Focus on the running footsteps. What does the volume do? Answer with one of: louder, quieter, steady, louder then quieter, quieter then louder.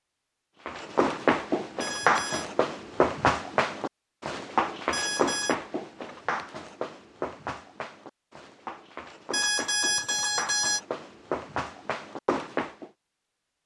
quieter then louder.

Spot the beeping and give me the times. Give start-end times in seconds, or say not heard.
1.8-2.5, 4.9-5.5, 9.3-10.8.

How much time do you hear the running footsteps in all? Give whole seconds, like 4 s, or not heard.
12 s.